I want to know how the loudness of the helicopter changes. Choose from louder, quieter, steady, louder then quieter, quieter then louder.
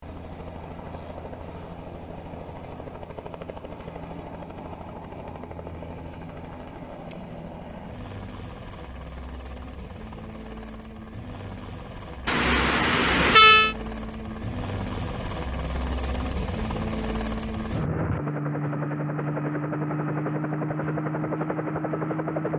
louder.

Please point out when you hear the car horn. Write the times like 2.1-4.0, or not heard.
12.2-13.8.